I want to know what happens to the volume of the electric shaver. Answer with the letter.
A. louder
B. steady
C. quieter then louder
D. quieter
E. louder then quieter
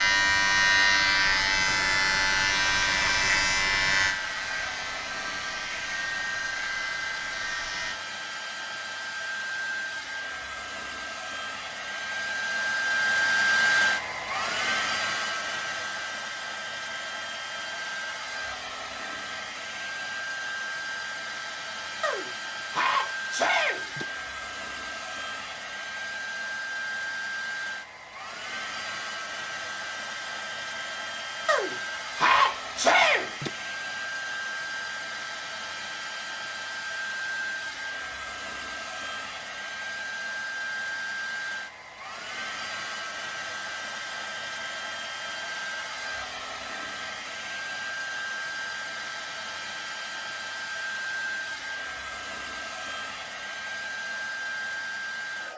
D.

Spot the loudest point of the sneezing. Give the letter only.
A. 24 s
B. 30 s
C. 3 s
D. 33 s
D.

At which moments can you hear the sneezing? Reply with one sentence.
The sneezing can be heard from 22.0 to 24.1 s and from 31.4 to 33.5 s.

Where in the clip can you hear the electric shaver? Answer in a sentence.
You can hear the electric shaver from 0.0 to 8.0 s.